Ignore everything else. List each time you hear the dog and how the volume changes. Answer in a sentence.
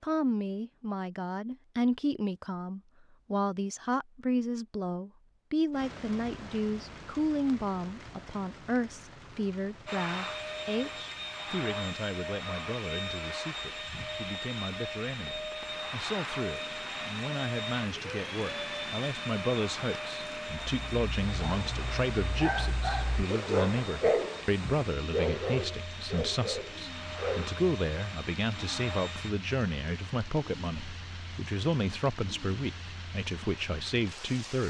You can hear the dog from 20.6 to 27.6 s, getting louder then quieter.